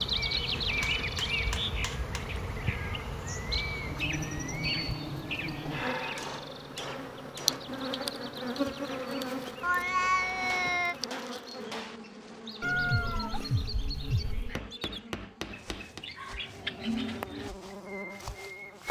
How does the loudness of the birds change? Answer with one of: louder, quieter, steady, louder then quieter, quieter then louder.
quieter then louder.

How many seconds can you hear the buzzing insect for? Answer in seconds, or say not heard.
19 s.